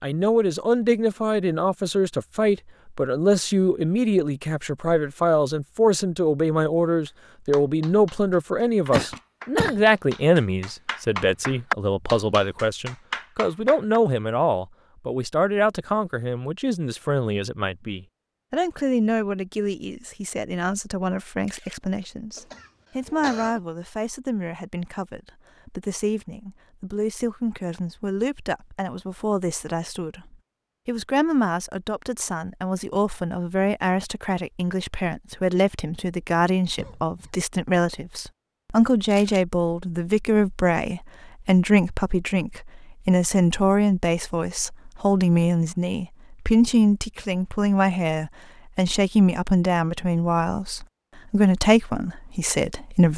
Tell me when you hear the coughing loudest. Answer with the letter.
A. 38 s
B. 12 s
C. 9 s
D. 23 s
C.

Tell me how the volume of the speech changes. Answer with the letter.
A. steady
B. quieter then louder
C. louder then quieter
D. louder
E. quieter
B.